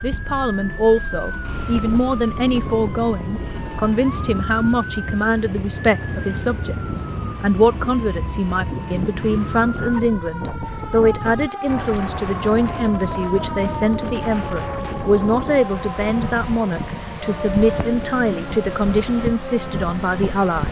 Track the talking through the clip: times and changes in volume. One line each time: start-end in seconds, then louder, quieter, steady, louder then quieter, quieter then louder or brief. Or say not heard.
0.0-20.6 steady.